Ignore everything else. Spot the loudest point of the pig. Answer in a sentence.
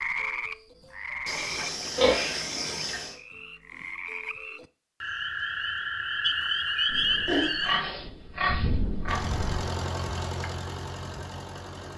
The loudest moment of the pig is at 2 seconds.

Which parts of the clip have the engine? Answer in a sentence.
You can hear the engine from 9.1 to 11.9 s.